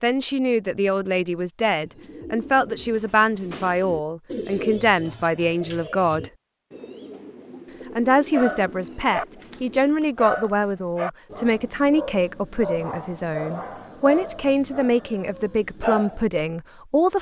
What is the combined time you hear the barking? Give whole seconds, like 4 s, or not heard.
8 s.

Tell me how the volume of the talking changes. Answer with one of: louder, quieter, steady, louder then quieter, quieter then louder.
steady.